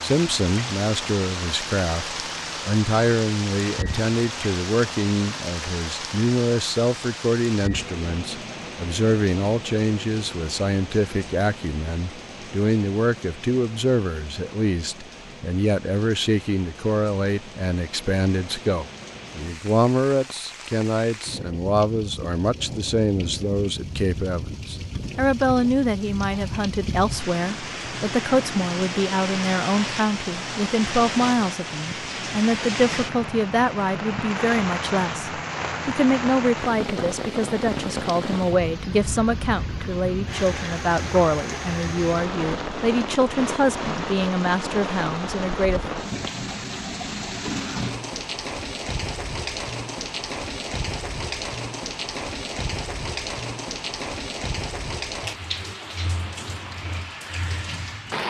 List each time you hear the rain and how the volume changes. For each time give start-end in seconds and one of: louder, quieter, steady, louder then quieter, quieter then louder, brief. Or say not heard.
0.0-58.2 quieter then louder.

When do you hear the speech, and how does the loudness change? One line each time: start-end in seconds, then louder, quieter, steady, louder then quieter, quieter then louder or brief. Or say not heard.
0.0-45.8 steady.